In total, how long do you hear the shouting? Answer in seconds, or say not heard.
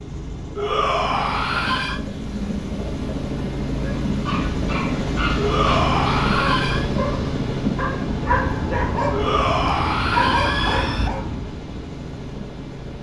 5 s.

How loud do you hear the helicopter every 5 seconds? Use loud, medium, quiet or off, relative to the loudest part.
loud, loud, medium.